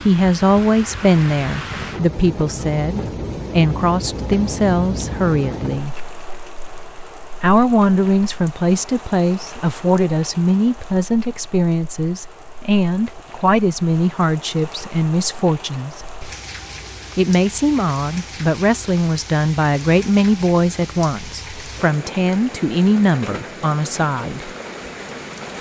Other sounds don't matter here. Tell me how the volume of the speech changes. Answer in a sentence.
The volume of the speech stays about the same.